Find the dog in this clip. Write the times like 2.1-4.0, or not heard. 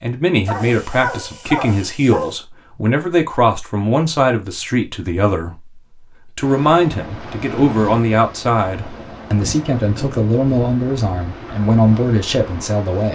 0.5-2.4.